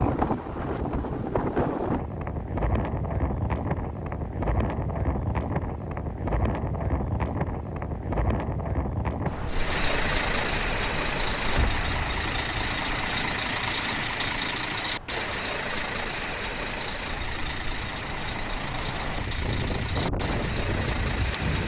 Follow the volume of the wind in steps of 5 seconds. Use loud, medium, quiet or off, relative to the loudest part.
loud, loud, medium, medium, loud.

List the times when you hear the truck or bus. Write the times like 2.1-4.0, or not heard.
9.4-21.6.